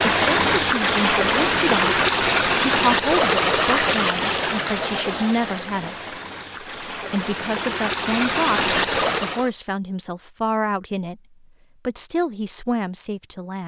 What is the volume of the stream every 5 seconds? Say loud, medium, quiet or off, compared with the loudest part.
loud, medium, off.